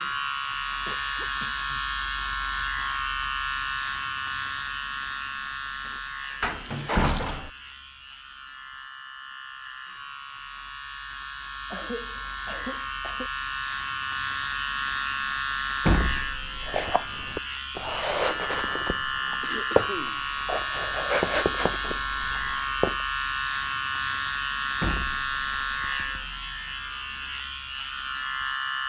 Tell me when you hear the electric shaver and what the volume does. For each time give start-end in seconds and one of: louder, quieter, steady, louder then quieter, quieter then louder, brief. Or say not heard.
0.0-28.8 quieter then louder.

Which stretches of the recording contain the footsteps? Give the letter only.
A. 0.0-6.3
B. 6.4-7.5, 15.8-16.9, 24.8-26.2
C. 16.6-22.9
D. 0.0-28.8
C.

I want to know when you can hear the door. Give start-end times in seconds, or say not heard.
6.4-7.5, 15.8-16.9, 24.8-26.2.